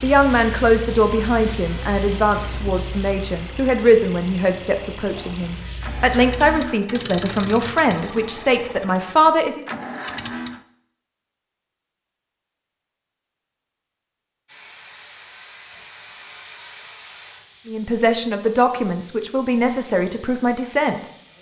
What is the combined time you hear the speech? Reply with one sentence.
You can hear the speech for 13 seconds altogether.